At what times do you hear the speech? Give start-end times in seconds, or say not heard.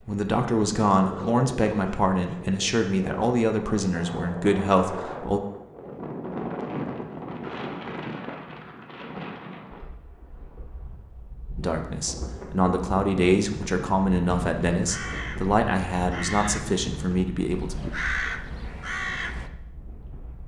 0.0-5.4, 11.6-17.9.